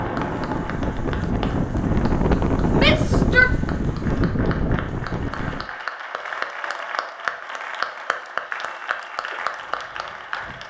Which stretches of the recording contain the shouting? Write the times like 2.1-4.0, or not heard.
2.8-3.5.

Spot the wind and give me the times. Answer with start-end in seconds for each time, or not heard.
0.0-5.7.